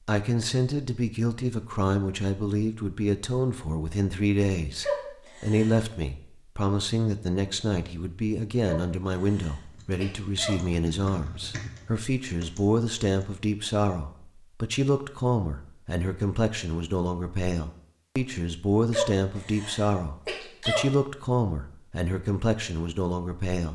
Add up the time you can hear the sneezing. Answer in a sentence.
The sneezing can be heard for 5 seconds in total.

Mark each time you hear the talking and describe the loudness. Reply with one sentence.
The talking can be heard from 0.1 to 23.6 s, at a steady volume.